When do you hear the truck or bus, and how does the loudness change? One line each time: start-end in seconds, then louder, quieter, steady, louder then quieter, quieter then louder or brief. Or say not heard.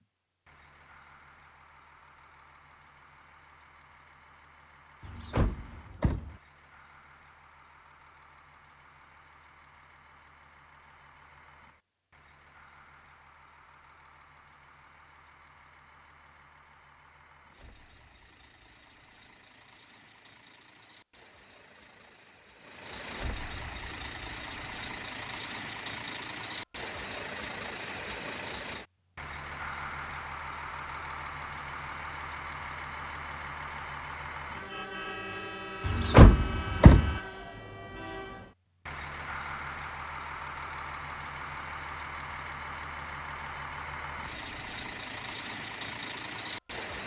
0.0-47.0 louder.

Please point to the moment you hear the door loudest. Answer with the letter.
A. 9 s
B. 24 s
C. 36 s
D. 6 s
C.